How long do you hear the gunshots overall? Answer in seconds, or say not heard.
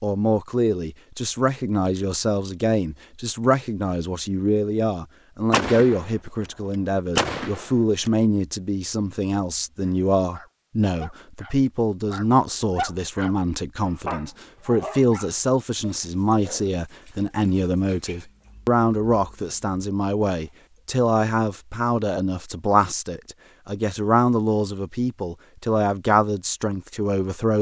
2 s.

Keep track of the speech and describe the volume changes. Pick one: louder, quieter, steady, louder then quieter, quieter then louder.
steady.